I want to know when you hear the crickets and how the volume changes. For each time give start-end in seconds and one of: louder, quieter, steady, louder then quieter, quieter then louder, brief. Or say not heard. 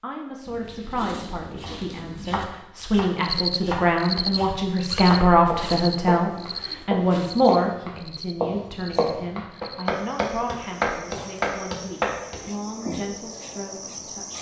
3.1-14.3 quieter then louder.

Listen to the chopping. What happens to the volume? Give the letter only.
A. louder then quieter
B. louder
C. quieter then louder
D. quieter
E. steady
B.